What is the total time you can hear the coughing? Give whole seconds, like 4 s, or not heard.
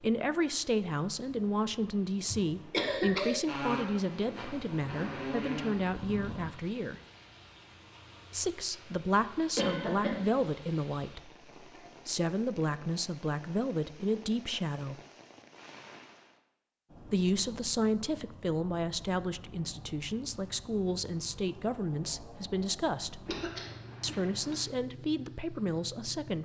3 s.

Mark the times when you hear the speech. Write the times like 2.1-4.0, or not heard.
0.0-7.0, 8.3-15.0, 17.1-23.2, 24.0-26.4.